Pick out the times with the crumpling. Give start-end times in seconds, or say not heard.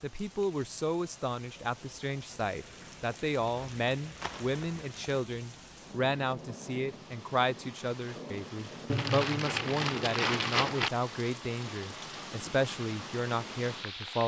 3.5-4.8, 8.8-10.9.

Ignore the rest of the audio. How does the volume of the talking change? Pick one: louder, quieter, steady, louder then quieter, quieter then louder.
steady.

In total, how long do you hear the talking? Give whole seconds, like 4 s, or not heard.
14 s.